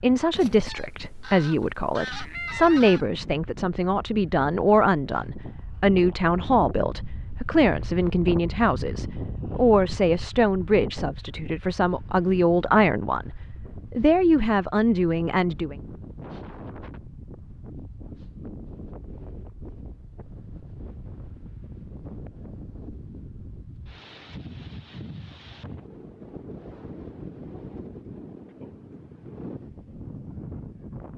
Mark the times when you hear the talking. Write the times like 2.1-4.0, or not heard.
0.0-15.8.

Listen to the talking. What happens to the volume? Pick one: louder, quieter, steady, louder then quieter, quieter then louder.
steady.